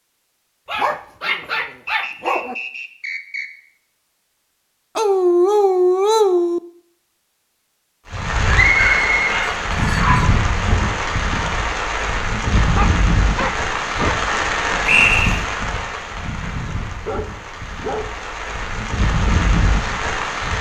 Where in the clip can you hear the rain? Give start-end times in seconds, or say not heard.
8.1-20.5.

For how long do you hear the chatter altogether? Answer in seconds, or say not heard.
not heard.